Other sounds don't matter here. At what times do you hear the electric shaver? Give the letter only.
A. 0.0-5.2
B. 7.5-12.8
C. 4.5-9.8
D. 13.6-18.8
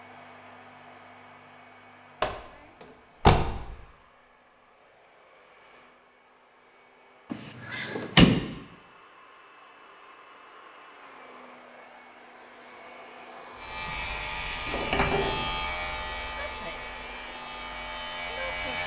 D.